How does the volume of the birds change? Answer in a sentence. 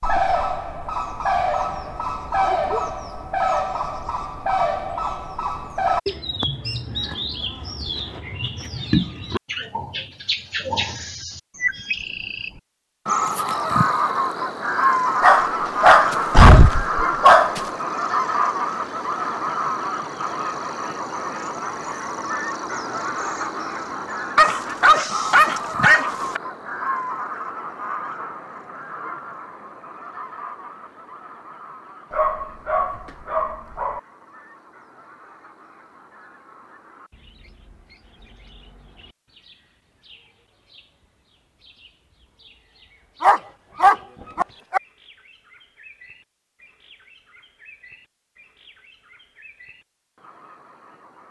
The volume of the birds goes down.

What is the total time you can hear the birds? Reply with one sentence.
You can hear the birds for 51 seconds altogether.